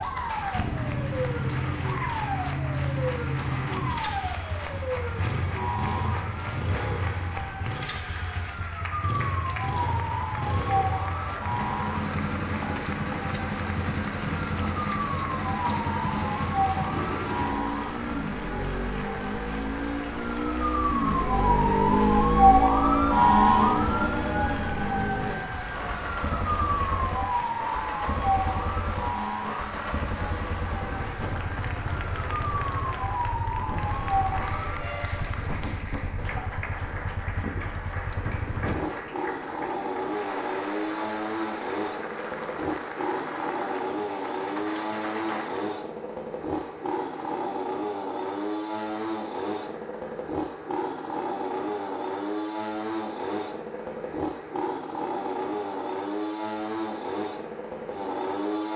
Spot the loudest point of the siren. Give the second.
23 s.